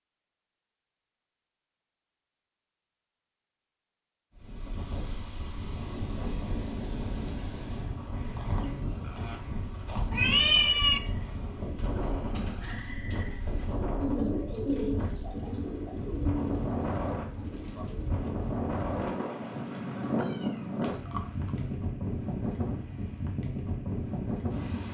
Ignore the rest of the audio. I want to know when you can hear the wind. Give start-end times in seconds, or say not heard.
4.3-24.9.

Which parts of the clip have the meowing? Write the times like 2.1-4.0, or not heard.
10.1-11.0, 19.7-21.7.